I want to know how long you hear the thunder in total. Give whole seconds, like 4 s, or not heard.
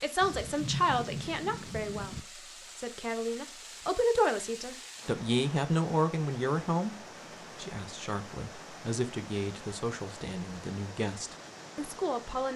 2 s.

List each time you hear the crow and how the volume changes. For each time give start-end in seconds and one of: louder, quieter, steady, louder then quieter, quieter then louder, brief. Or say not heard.
not heard.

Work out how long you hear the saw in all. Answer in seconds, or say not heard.
not heard.